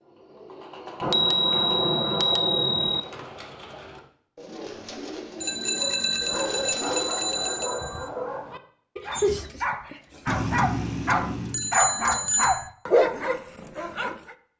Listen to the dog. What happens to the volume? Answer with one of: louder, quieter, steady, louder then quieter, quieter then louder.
louder.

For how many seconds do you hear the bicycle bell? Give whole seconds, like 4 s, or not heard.
7 s.